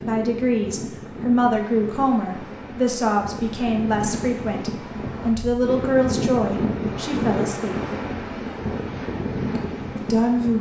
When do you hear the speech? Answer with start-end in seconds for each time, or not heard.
0.1-7.8, 9.9-10.5.